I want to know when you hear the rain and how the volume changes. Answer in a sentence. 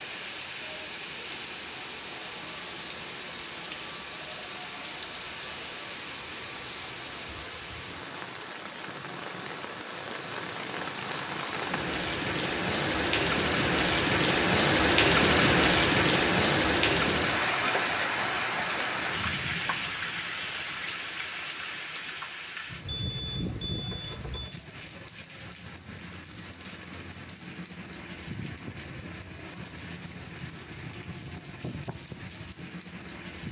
You can hear the rain from 0.0 to 33.4 s, getting louder then quieter.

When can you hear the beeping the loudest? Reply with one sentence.
The volume of the beeping peaks at 23 seconds.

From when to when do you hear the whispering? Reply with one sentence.
You can't hear the whispering here.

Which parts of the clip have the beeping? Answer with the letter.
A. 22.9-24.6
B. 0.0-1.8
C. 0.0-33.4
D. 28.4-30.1
A.